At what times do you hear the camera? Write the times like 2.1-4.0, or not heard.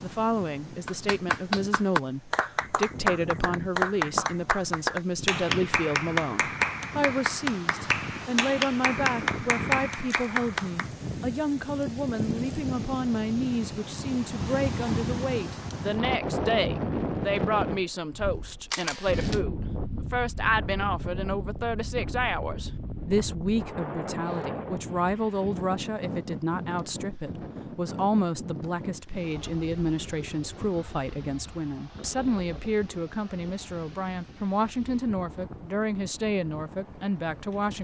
18.7-19.4.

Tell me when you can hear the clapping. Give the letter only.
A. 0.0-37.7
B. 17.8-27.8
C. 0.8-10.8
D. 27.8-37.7
C.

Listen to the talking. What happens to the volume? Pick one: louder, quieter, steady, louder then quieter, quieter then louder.
steady.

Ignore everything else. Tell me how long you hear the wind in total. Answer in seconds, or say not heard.
38 s.